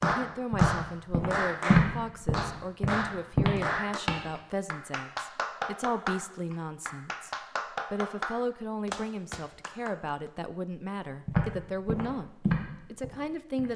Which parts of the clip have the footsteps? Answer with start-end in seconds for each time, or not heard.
0.0-4.2, 11.2-13.7.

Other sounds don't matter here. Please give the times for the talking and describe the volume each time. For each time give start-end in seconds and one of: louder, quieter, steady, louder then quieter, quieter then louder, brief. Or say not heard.
0.0-13.7 steady.